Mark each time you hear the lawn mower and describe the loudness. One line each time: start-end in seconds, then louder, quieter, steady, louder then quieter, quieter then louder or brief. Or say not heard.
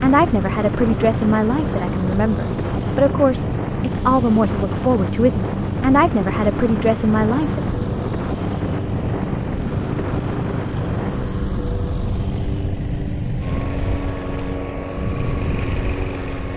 0.0-16.5 steady.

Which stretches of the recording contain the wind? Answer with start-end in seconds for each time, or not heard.
0.0-16.5.